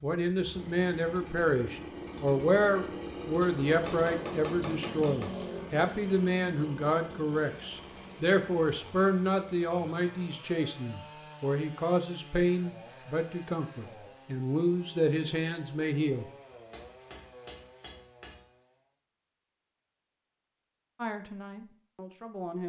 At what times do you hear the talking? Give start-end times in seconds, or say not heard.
0.0-16.2, 20.9-22.6.